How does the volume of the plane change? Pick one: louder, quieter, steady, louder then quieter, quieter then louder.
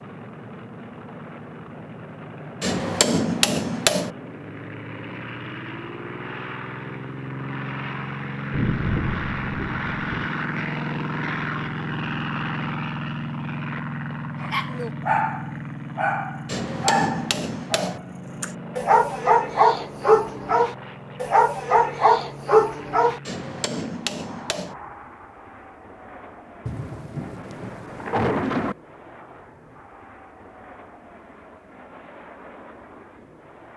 louder then quieter.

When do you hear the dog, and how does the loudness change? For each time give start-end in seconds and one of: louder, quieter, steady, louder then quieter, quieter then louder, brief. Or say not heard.
14.4-23.2 louder.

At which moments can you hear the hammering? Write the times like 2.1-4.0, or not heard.
2.6-4.2, 16.4-18.0, 23.2-24.8.